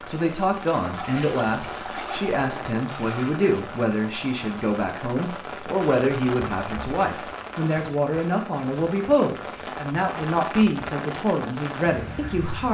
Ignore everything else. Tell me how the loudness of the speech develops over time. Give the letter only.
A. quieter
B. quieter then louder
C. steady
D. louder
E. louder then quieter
C.